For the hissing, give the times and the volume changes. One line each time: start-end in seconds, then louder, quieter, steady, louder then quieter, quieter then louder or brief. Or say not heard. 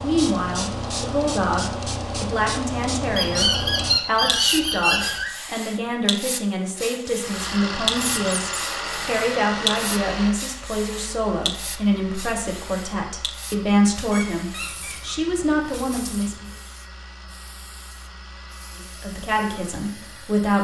0.0-20.4 quieter.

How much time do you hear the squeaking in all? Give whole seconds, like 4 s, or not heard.
4 s.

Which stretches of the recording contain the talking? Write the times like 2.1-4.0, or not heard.
0.0-16.4, 18.8-20.6.